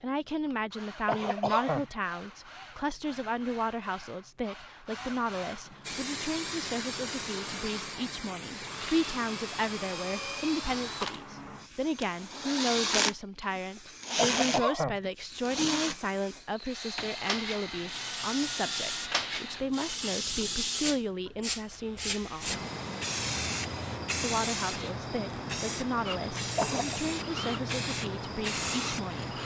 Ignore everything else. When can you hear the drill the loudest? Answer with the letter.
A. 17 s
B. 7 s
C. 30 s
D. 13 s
D.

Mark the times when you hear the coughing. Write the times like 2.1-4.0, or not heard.
1.1-1.9, 14.2-15.1, 26.6-27.0.